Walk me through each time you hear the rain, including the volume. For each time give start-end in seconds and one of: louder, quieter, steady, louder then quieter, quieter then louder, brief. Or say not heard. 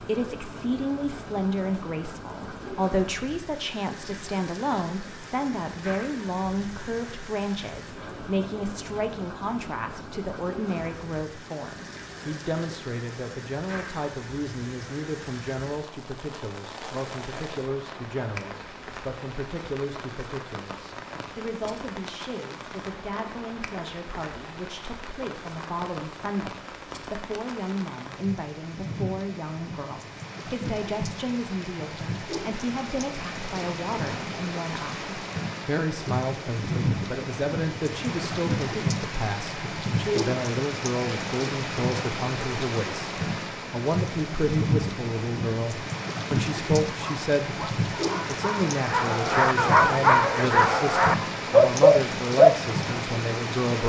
0.0-53.8 louder.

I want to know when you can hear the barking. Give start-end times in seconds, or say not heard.
47.0-52.5.